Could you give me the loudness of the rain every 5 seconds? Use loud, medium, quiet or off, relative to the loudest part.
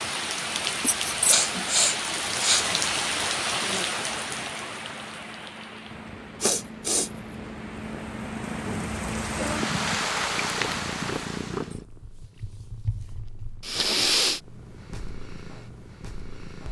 loud, medium, loud, off.